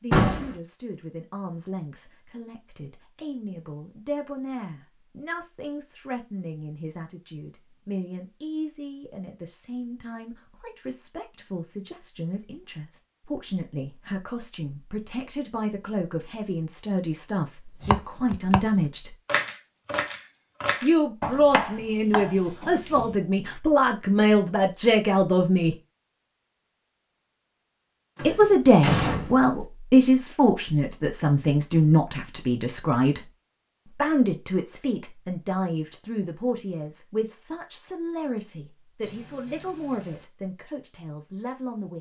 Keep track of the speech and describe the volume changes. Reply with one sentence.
The loudness of the speech goes up, then down.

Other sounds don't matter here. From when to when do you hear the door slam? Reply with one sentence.
The door slam can be heard from 0.1 to 0.6 s and from 28.1 to 29.6 s.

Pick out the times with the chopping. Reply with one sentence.
The chopping can be heard from 17.8 to 18.6 s and from 19.2 to 23.6 s.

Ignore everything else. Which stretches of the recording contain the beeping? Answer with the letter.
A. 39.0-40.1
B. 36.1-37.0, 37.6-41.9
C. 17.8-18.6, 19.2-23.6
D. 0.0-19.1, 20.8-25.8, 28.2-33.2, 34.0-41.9
A.